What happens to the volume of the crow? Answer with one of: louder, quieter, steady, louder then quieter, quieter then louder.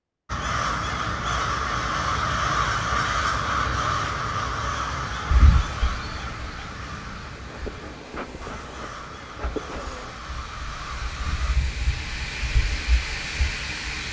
quieter.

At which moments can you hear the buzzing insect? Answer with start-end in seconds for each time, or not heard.
7.2-10.2.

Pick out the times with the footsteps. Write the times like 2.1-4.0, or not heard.
not heard.